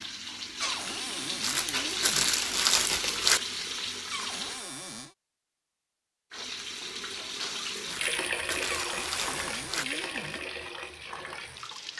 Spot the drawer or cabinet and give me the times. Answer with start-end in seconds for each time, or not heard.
0.6-2.4, 4.1-5.2, 8.7-10.4.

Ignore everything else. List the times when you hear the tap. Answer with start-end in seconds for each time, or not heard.
0.0-4.7, 6.3-11.9.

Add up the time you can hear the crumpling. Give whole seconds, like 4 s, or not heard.
4 s.